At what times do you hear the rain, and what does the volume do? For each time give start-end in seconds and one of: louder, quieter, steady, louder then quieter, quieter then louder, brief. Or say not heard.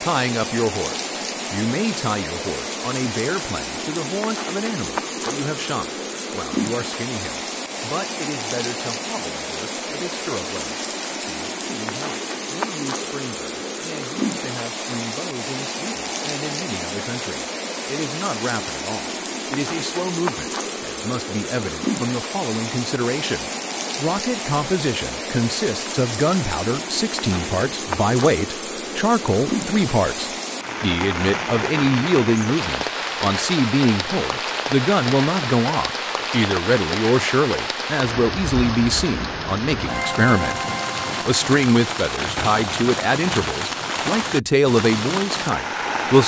0.0-46.2 steady.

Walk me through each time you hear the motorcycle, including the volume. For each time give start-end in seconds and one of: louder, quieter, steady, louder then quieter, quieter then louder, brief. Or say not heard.
not heard.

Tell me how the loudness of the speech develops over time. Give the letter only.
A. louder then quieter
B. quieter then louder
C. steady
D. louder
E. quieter
B.